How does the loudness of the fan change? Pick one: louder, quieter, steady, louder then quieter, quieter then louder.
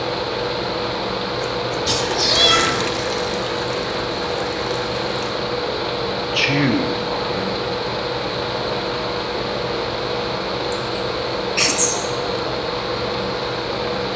steady.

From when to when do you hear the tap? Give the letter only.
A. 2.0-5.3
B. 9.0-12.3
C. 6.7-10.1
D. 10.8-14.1
A.